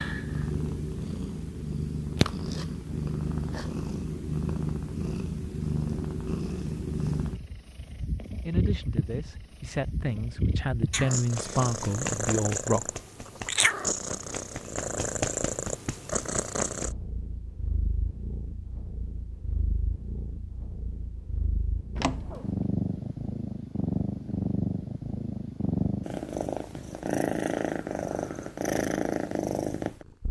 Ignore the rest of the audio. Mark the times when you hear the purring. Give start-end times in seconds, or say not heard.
0.0-30.2.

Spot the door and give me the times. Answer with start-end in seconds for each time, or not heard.
21.9-22.6.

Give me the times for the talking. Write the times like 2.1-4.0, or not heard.
8.4-12.9.